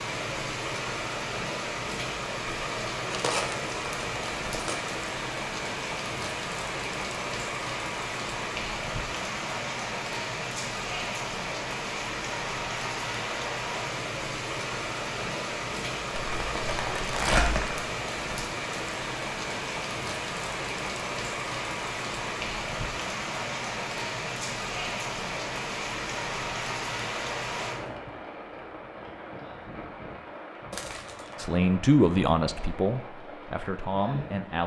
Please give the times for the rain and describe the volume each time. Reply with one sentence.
The rain can be heard from 0.0 to 34.6 s, getting quieter.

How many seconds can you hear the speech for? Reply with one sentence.
You can hear the speech for 3 seconds altogether.